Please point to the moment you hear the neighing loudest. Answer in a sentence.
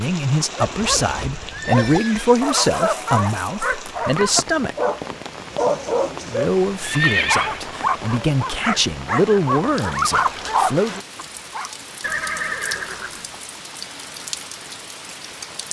The loudest moment of the neighing is at 7 seconds.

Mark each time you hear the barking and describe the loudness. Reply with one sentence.
You can hear the barking from 0.5 to 11.7 s, at a steady volume.